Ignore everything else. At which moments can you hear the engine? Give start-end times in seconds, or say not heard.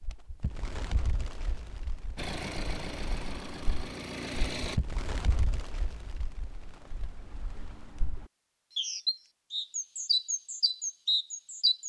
2.1-4.8.